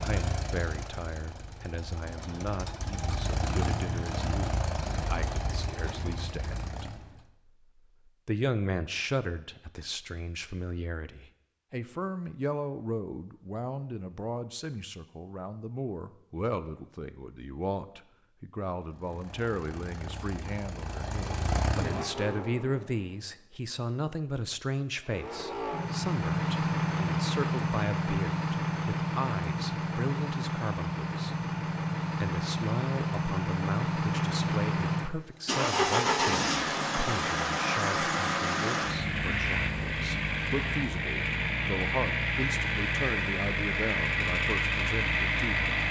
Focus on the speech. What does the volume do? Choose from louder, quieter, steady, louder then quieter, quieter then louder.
steady.